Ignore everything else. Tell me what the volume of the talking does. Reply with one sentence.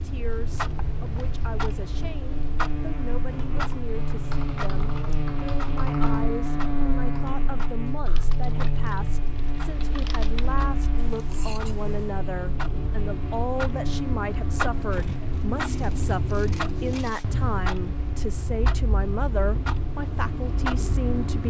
The volume of the talking goes up.